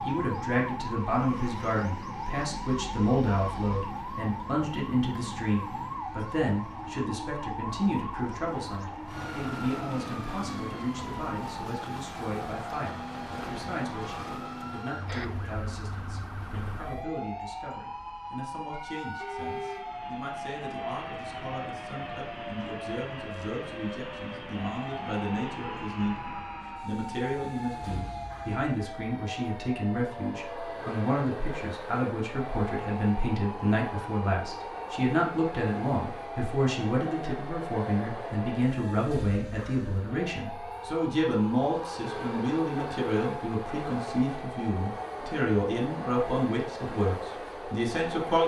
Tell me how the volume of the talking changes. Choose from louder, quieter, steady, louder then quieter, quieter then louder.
quieter then louder.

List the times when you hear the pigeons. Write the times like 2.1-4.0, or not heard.
not heard.